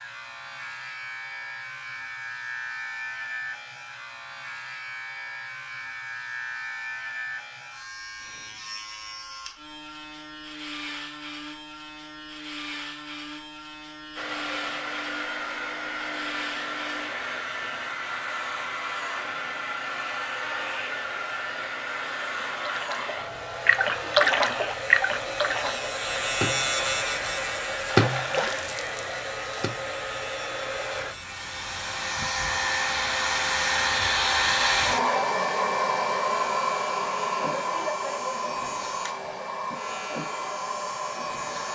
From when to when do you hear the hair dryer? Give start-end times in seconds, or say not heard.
14.2-41.6.